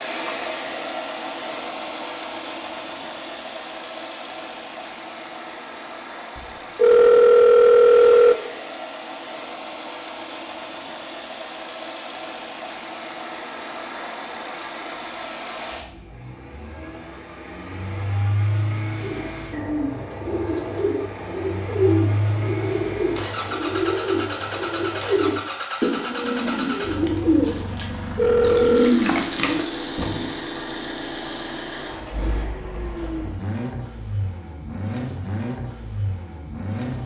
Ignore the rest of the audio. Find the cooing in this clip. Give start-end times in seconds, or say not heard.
19.0-30.4.